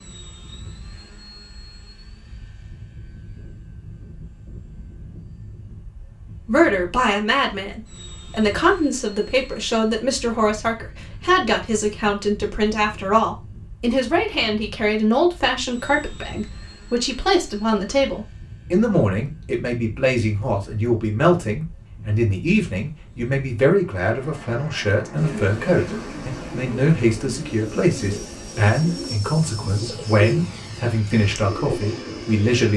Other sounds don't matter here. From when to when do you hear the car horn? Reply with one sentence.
The car horn can't be heard in this clip.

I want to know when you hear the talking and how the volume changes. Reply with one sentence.
You can hear the talking from 6.5 to 32.7 s, at a steady volume.